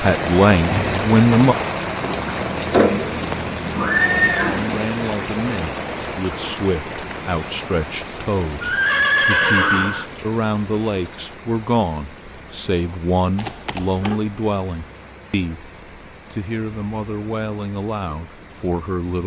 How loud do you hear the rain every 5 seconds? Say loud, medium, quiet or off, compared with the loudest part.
loud, medium, quiet, quiet.